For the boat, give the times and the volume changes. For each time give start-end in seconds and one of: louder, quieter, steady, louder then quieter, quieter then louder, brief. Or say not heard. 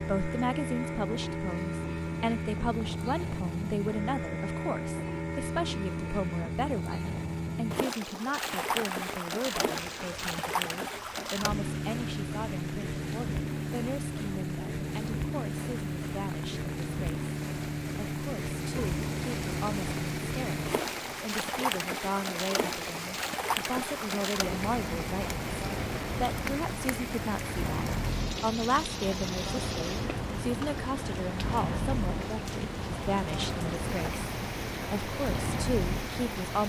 0.0-36.6 steady.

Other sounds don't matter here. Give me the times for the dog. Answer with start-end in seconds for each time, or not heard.
18.8-20.1.